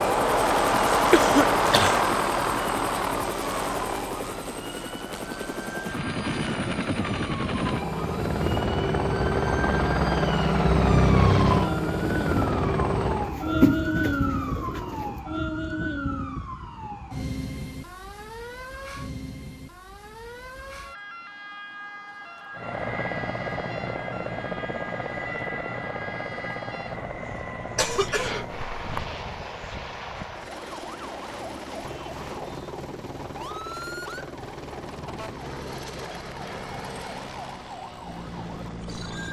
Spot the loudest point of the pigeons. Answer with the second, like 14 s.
14 s.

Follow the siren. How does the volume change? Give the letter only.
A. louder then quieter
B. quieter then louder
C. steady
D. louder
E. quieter
A.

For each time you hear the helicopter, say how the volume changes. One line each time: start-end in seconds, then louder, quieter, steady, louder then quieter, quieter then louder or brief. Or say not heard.
0.0-13.3 quieter then louder
22.5-39.2 quieter.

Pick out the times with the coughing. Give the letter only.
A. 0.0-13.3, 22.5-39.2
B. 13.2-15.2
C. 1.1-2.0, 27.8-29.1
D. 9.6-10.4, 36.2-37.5
C.